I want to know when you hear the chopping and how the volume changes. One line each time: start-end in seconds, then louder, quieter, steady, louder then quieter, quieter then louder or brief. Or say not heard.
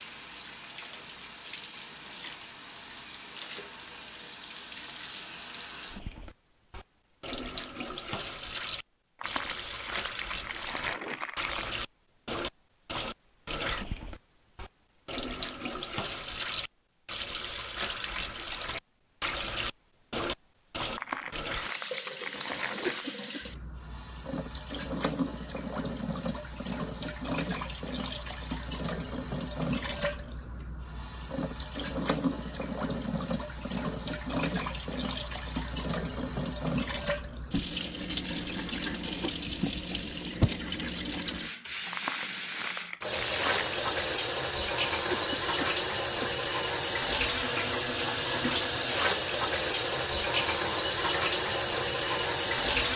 not heard.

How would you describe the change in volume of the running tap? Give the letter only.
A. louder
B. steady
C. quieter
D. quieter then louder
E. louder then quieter
A.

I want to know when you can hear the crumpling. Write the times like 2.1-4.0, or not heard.
9.2-11.8, 20.9-23.1, 41.9-43.9.